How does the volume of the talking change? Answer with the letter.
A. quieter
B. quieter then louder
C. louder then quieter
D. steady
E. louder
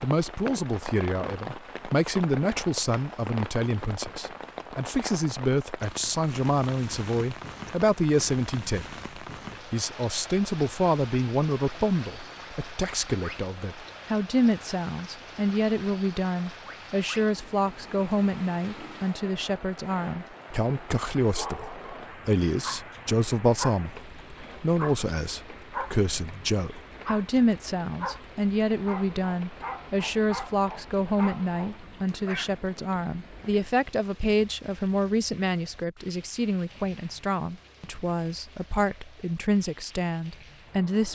D.